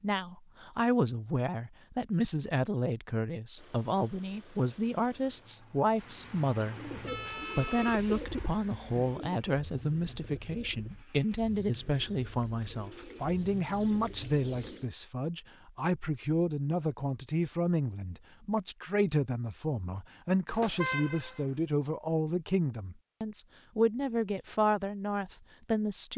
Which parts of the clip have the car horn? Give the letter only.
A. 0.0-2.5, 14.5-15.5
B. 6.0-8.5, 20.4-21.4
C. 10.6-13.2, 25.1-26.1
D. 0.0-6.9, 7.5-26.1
B.